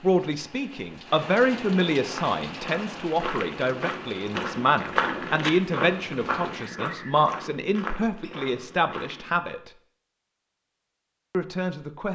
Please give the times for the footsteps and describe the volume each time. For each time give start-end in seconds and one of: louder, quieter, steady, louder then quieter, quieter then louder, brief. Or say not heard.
1.9-9.4 louder then quieter.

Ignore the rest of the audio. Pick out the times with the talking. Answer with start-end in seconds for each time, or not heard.
0.0-9.7, 11.3-12.1.